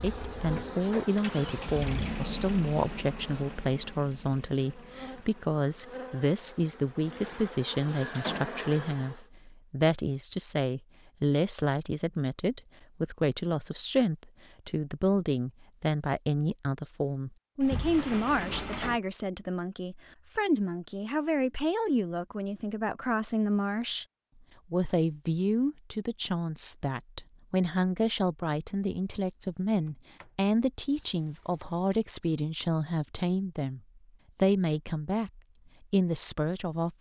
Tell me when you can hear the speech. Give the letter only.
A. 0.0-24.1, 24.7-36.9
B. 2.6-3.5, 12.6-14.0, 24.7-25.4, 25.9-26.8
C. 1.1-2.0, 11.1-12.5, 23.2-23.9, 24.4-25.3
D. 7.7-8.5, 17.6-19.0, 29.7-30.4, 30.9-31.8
A.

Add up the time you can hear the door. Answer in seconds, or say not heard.
4 s.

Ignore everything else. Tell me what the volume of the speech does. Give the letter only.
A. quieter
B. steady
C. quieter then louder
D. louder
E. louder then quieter
B.